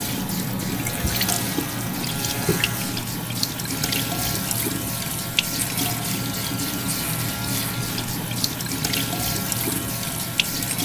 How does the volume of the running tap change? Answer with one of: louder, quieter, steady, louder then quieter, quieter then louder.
steady.